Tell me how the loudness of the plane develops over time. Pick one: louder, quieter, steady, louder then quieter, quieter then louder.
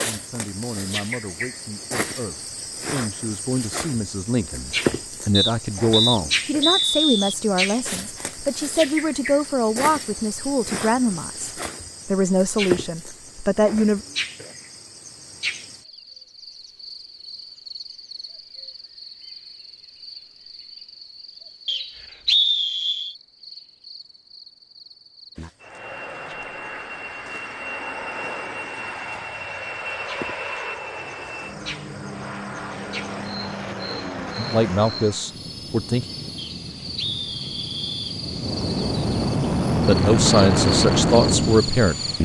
louder.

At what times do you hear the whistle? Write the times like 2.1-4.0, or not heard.
5.3-7.3, 21.6-23.1, 36.4-38.2.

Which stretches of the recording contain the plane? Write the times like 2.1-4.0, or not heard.
25.6-42.2.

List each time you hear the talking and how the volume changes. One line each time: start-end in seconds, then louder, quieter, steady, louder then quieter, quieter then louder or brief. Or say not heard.
0.0-14.0 louder
34.4-36.0 brief
39.9-42.2 brief.